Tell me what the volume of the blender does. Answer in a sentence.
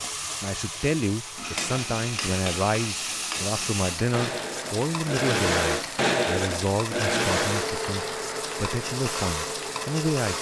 The loudness of the blender goes up, then down.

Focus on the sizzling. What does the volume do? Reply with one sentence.
The loudness of the sizzling stays about the same.